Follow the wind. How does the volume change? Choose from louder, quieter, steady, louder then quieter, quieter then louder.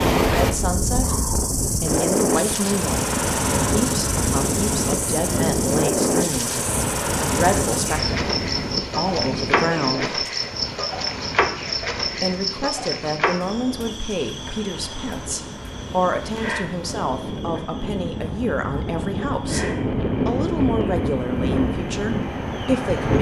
quieter then louder.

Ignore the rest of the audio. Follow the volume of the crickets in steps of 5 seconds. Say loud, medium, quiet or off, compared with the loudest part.
loud, loud, loud, medium, medium.